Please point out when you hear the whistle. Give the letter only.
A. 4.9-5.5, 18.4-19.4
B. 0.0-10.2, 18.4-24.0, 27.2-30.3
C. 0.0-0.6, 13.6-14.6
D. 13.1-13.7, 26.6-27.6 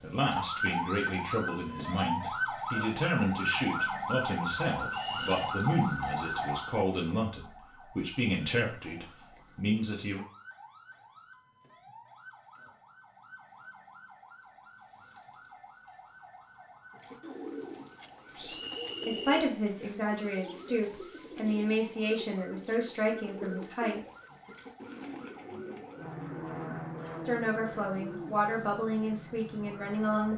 A.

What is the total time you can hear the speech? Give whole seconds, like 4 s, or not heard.
19 s.